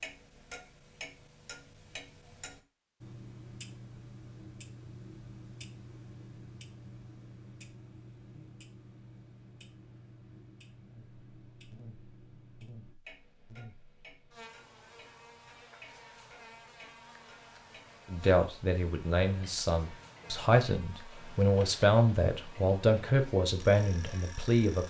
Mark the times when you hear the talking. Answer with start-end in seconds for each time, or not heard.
18.1-24.8.